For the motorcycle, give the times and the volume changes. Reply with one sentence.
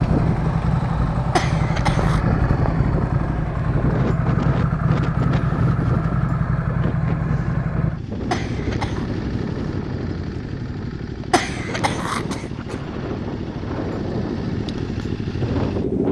You can hear the motorcycle from 0.0 to 16.0 s, getting quieter.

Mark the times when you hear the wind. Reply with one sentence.
The wind can be heard from 0.0 to 16.0 s.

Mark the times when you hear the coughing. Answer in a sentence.
You can hear the coughing from 1.4 to 2.2 s, from 8.3 to 9.1 s and from 11.3 to 12.8 s.